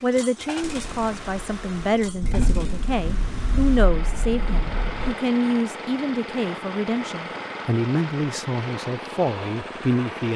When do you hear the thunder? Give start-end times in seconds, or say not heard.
0.6-5.2.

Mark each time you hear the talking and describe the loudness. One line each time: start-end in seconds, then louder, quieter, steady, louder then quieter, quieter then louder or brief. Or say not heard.
0.0-10.3 steady.